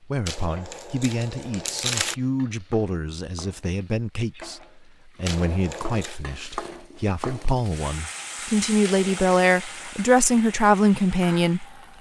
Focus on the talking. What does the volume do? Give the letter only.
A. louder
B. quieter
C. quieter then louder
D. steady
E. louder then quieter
A.